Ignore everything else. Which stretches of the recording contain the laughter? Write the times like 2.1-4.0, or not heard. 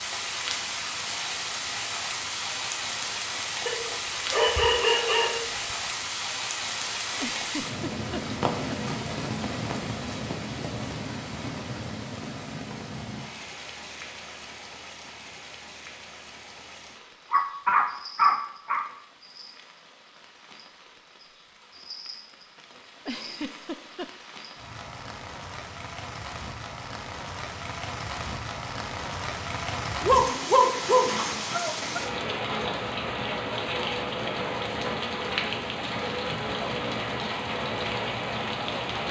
7.2-8.8, 23.1-24.1.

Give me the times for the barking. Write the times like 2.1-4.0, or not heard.
3.6-5.5, 17.3-18.9, 30.0-32.0.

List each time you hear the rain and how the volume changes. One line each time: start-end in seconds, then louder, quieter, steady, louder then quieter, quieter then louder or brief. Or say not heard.
0.0-39.0 quieter then louder.